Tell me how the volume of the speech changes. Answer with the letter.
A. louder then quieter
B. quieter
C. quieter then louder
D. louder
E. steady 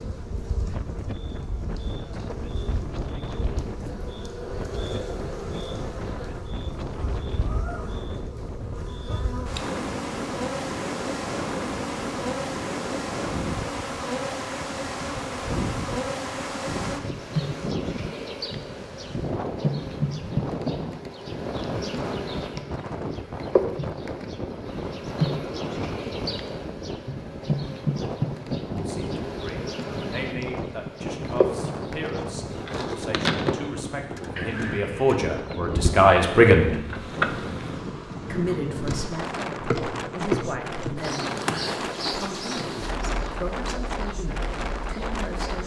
A.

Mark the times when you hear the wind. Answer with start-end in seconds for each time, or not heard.
0.0-45.6.